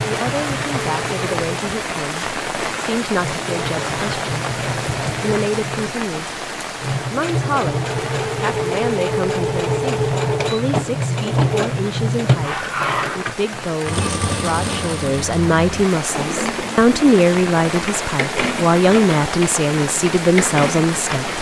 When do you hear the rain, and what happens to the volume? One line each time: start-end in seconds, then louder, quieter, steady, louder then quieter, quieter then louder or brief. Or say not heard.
0.0-21.3 quieter then louder.